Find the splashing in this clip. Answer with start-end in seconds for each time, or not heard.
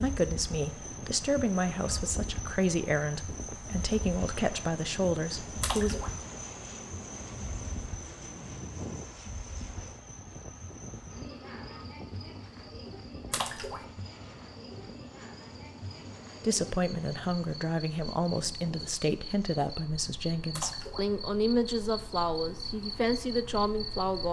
5.6-6.2, 13.3-13.8, 20.5-21.1.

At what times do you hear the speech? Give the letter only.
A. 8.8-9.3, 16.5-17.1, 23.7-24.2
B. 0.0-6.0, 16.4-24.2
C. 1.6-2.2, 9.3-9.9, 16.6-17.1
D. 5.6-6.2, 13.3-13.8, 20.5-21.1
B.